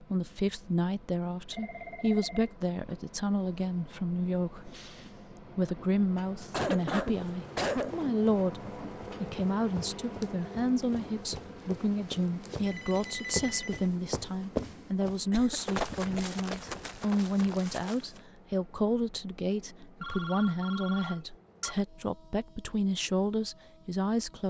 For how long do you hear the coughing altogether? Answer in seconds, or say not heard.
3 s.